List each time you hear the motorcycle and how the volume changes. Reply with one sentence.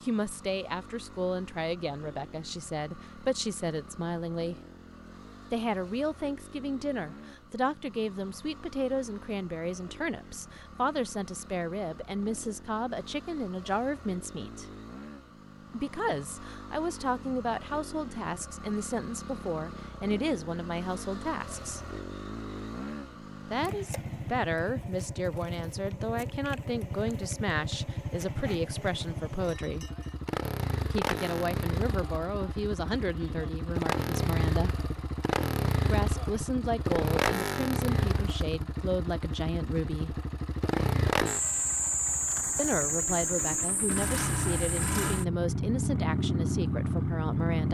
You can hear the motorcycle from 0.0 to 47.7 s, getting louder.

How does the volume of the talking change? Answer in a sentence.
The loudness of the talking stays about the same.